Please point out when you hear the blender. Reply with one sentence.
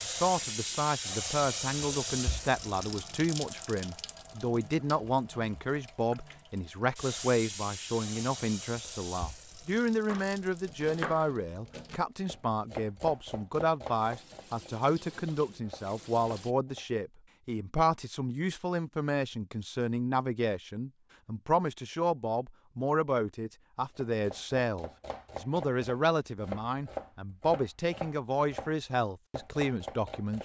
The blender can't be heard in this clip.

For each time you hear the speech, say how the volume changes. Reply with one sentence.
The speech can be heard from 0.0 to 30.3 s, at a steady volume.